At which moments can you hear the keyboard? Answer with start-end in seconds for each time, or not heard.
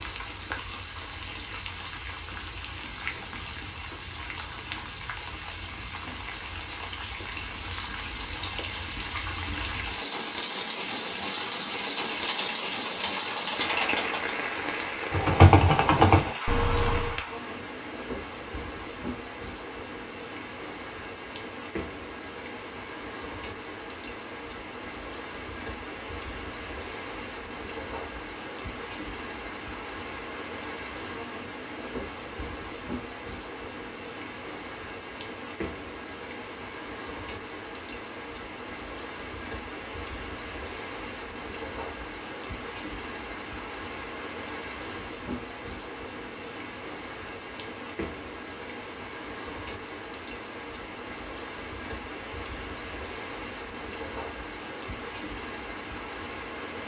11.9-17.2.